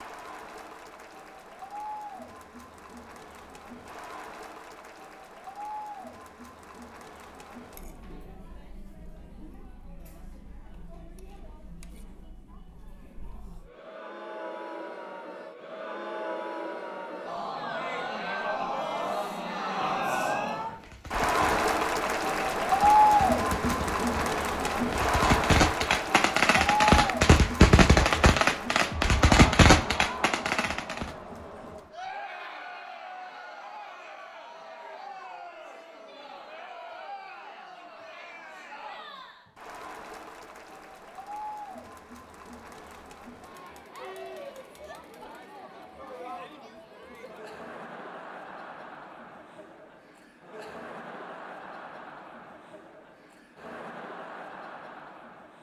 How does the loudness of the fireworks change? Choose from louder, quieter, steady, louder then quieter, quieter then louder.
louder.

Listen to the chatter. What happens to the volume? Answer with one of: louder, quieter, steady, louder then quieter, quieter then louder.
louder then quieter.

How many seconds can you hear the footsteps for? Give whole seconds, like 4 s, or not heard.
not heard.